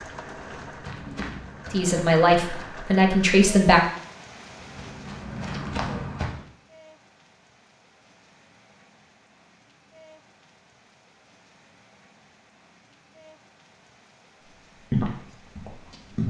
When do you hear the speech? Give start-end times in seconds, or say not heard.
1.7-3.8.